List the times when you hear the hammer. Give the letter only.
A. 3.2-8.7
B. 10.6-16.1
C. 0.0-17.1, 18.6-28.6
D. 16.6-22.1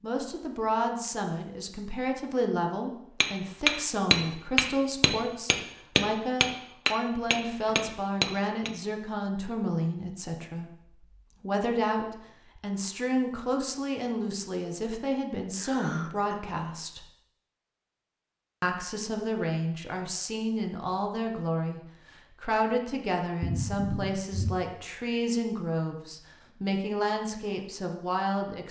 A.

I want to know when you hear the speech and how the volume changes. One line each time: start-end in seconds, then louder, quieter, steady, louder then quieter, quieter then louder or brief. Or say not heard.
0.0-17.1 steady
18.6-28.6 steady.